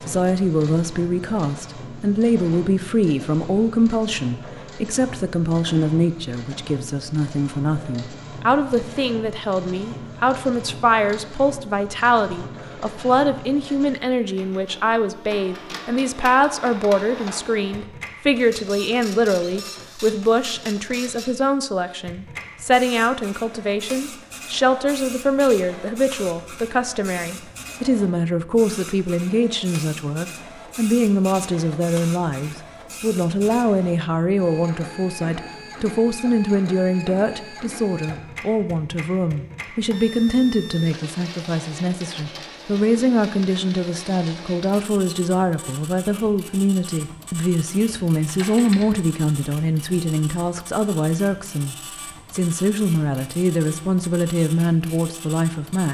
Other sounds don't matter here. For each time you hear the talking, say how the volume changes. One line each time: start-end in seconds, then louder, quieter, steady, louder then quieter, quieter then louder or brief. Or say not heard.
0.1-55.8 steady.